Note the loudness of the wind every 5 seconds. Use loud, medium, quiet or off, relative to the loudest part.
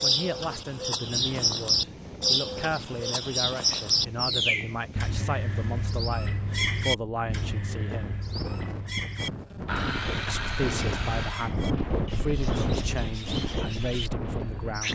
medium, medium, loud.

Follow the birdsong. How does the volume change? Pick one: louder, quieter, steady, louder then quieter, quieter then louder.
quieter.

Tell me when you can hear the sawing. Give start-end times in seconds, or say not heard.
9.7-11.6.